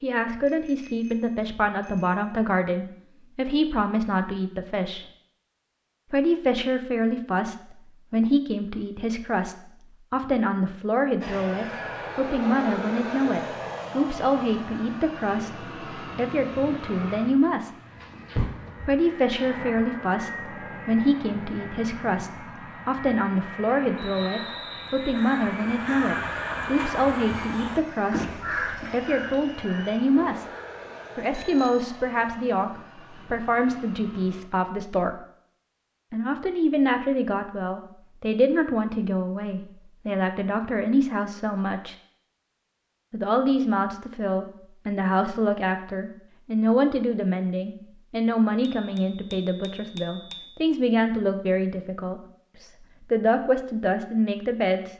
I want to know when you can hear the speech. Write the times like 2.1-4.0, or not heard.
0.0-5.0, 6.1-17.7, 18.9-30.4, 31.1-35.2, 36.1-42.0, 43.1-54.9.